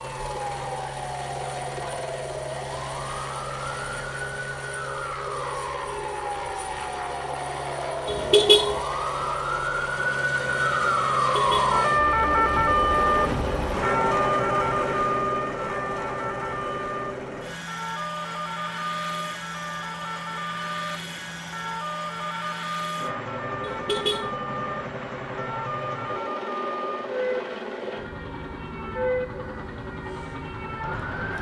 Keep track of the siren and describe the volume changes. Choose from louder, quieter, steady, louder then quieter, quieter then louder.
louder then quieter.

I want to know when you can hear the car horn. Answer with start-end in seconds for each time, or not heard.
8.1-8.8, 11.3-11.8, 23.6-24.4.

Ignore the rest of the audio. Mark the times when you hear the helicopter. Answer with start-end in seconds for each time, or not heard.
0.0-31.3.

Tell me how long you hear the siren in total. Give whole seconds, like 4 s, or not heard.
31 s.